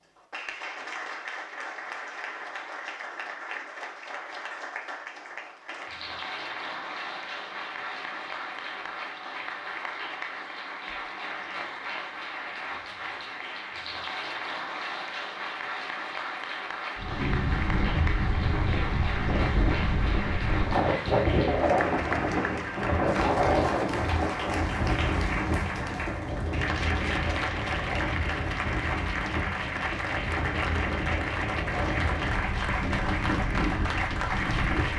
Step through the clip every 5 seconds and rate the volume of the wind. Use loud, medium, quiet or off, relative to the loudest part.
off, off, off, loud, loud, medium, medium.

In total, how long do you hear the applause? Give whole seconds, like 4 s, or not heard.
35 s.